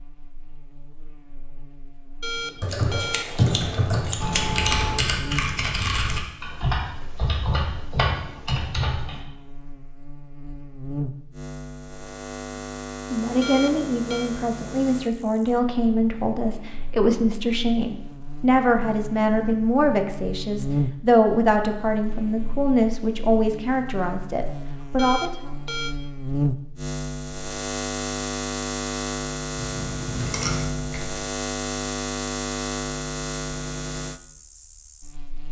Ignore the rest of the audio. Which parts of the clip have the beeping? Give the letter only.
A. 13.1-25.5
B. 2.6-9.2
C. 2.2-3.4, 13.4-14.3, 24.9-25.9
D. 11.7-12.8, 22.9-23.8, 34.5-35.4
C.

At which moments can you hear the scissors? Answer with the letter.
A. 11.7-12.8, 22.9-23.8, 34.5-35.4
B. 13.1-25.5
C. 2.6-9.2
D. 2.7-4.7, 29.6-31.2
D.